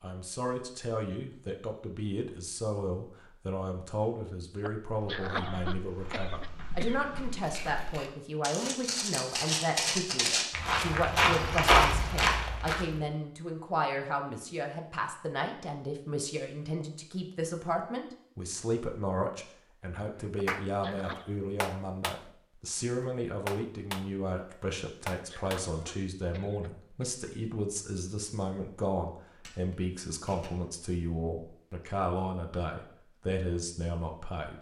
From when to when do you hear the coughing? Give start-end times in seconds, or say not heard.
4.6-7.0, 20.4-21.4, 24.8-27.1.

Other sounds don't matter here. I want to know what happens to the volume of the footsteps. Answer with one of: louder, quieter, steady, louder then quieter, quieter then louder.
louder.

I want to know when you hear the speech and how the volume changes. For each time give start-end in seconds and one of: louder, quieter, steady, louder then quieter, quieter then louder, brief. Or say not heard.
0.0-34.5 steady.